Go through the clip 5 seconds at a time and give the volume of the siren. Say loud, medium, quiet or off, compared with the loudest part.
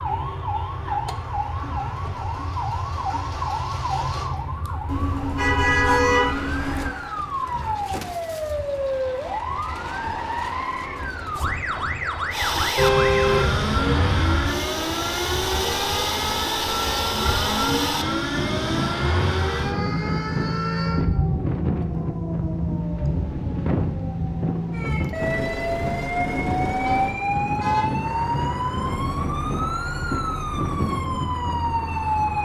loud, loud, loud, loud, medium, loud, loud.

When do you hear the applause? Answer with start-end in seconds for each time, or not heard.
not heard.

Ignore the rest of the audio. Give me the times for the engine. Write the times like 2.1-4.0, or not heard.
0.0-4.3, 12.3-32.3.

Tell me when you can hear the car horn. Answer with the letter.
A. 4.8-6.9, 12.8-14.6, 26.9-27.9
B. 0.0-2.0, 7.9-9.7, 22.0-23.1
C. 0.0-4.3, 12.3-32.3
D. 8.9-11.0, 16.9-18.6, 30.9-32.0
A.